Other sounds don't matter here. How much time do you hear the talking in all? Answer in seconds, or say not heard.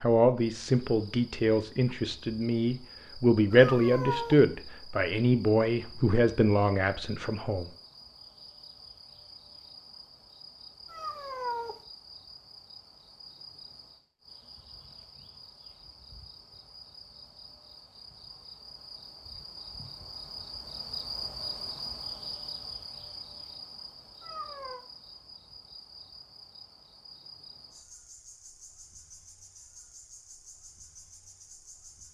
8 s.